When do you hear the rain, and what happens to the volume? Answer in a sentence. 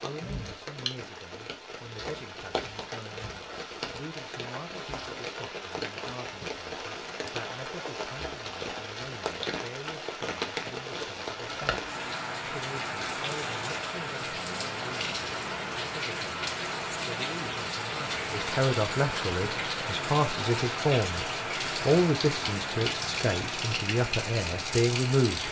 You can hear the rain from 0.0 to 25.4 s, getting louder.